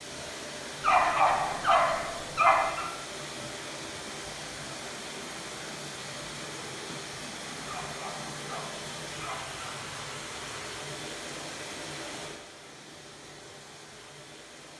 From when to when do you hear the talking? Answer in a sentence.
The talking can't be heard in this clip.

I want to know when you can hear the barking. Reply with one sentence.
You can hear the barking from 0.8 to 2.9 s and from 7.7 to 9.6 s.